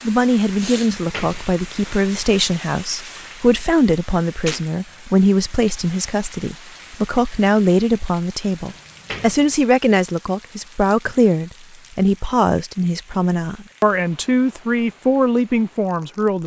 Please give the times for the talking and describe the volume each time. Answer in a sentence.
You can hear the talking from 0.0 to 16.4 s, at a steady volume.